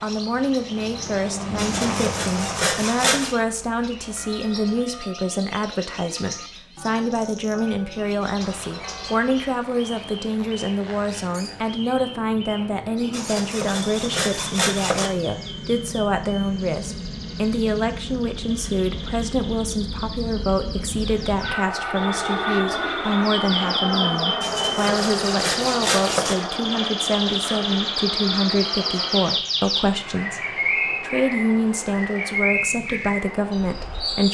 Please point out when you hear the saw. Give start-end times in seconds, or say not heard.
1.6-3.4, 13.1-15.1, 24.4-26.4.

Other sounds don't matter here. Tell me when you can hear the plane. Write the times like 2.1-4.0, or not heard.
0.0-4.8, 8.3-34.2.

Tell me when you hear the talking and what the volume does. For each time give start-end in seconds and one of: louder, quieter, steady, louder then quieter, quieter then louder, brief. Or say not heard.
0.0-34.2 steady.